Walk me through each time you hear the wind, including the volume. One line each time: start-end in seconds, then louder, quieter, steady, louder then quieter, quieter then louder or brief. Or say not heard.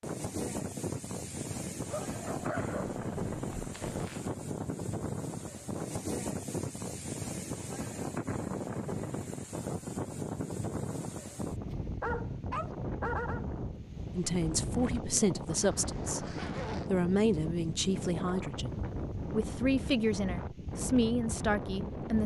0.0-22.2 steady.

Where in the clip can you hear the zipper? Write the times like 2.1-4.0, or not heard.
3.5-4.3, 15.6-16.9.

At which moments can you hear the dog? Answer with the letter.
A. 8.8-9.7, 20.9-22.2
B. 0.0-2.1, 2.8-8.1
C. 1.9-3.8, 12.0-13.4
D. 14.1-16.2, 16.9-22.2
C.